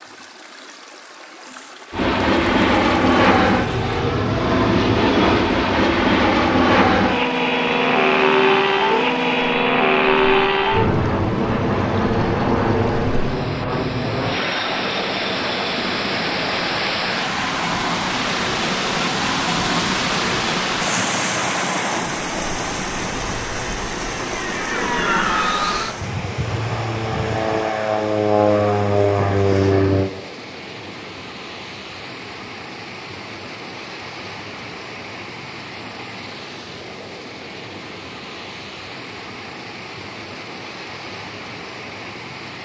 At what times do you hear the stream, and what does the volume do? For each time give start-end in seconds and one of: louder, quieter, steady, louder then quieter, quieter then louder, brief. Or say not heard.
0.0-42.6 louder then quieter.